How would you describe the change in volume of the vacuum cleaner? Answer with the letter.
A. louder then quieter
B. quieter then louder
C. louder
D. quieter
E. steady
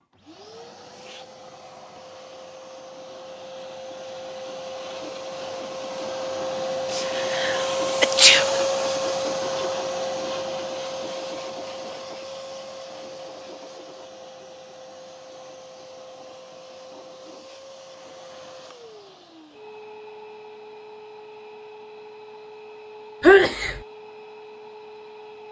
A.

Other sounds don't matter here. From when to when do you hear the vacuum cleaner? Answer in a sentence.
You can hear the vacuum cleaner from 0.0 to 25.4 s.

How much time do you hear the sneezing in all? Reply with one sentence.
You can hear the sneezing for 2 seconds altogether.